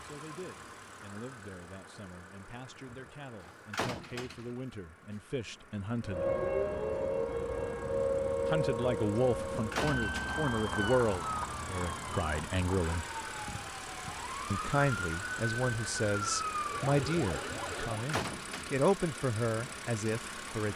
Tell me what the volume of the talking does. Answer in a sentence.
The loudness of the talking goes up.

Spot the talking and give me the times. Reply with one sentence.
You can hear the talking from 0.0 to 6.3 s, from 8.4 to 13.1 s and from 14.5 to 20.7 s.